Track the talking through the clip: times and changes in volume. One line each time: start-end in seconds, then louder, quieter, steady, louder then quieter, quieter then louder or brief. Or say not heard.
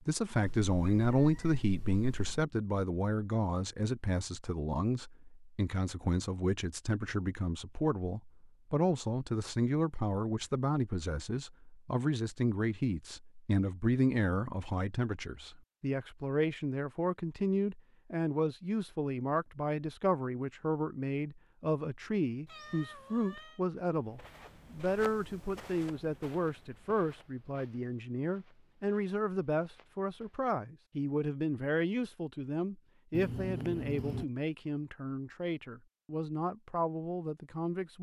0.1-37.9 steady.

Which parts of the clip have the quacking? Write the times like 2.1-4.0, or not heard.
not heard.